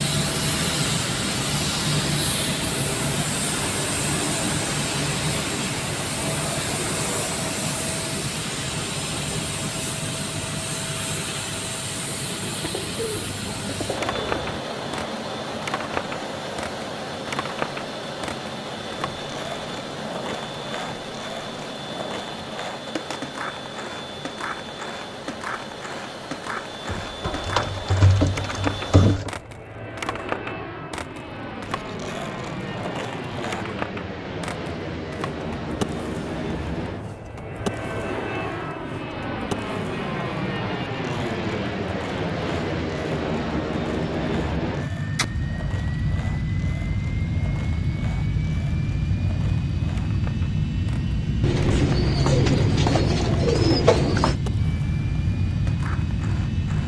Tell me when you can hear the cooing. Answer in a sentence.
You can hear the cooing from 12.6 to 14.6 s, from 26.9 to 29.3 s and from 51.4 to 54.4 s.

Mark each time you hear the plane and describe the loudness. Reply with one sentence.
The plane can be heard from 0.0 to 56.8 s, getting quieter then louder.